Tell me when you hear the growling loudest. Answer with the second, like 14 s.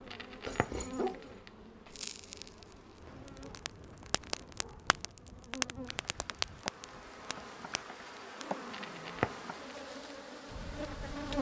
1 s.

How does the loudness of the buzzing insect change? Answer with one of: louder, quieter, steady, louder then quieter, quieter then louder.
quieter then louder.